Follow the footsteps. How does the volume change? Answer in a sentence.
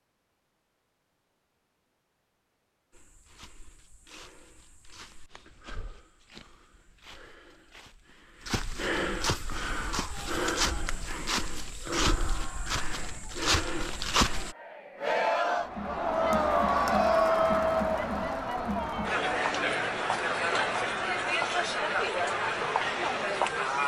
The volume of the footsteps goes up.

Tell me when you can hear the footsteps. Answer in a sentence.
The footsteps can be heard from 2.9 to 14.6 s.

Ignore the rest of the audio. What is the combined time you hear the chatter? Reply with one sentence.
The chatter can be heard for 14 seconds in total.